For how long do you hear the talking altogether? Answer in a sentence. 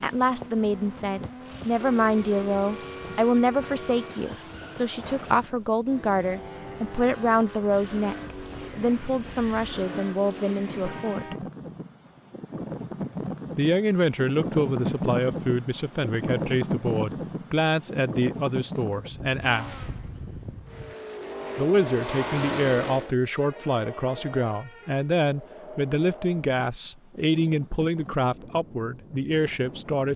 The talking can be heard for 26 seconds in total.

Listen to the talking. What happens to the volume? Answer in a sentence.
The loudness of the talking stays about the same.